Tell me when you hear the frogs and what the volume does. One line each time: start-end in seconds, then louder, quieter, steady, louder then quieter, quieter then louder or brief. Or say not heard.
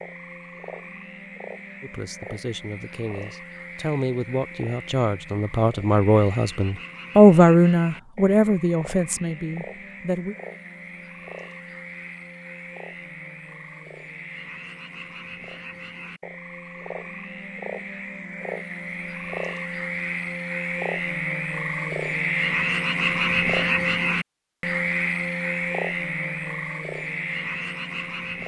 0.0-28.4 louder.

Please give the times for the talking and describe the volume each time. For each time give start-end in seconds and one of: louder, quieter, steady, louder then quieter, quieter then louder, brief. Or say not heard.
1.8-10.3 louder then quieter.